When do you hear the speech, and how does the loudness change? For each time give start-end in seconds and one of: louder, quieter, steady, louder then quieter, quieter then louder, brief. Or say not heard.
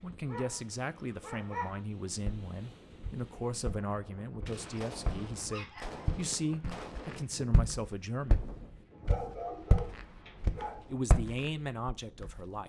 0.0-8.4 steady
10.8-12.6 brief.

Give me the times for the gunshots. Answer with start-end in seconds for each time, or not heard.
4.5-7.2.